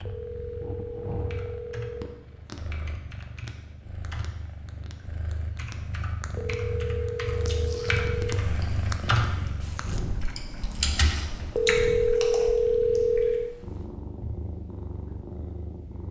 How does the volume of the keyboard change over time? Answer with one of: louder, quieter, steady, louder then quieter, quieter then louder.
louder.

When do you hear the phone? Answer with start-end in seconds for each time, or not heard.
0.1-2.1, 6.3-8.4, 11.6-13.6.